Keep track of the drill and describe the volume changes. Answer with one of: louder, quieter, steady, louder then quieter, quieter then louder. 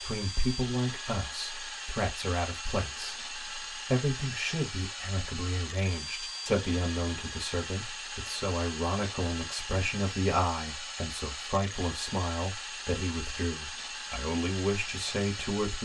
steady.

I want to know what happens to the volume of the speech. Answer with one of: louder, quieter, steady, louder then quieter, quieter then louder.
steady.